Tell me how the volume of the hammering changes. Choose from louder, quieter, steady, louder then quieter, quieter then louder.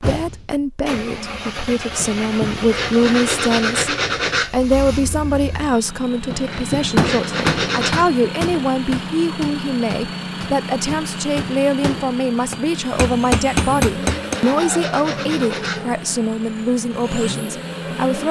quieter then louder.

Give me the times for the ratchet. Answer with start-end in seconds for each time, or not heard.
not heard.